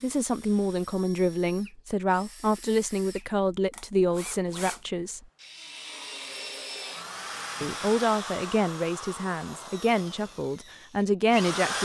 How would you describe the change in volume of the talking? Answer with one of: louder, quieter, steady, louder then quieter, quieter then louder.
steady.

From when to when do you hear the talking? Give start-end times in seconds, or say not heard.
0.0-5.2, 7.6-11.7.